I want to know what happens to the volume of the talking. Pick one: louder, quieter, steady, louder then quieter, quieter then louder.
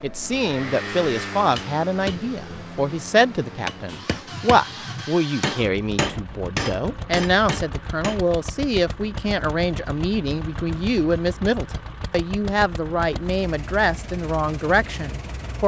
steady.